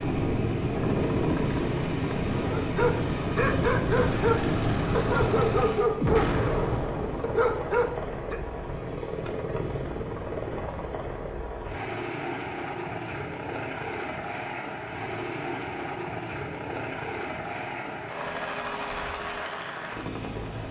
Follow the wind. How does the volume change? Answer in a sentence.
The volume of the wind goes down.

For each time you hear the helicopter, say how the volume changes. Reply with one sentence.
The helicopter can be heard from 0.0 to 20.6 s, at a steady volume.